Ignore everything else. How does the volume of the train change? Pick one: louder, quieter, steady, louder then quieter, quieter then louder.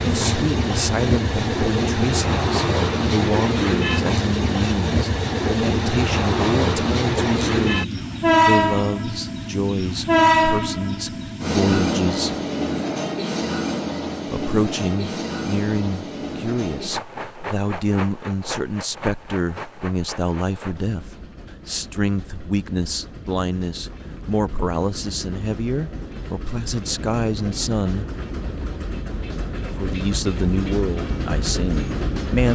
quieter then louder.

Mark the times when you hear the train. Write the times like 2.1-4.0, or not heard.
0.0-32.5.